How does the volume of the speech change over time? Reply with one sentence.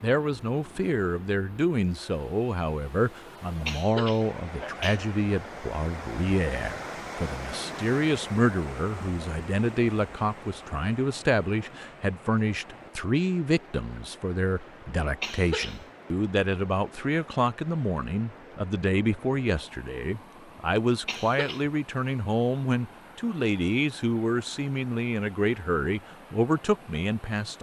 The volume of the speech stays about the same.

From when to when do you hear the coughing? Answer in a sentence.
You can hear the coughing from 3.6 to 5.0 s, from 15.2 to 15.8 s and from 21.1 to 21.6 s.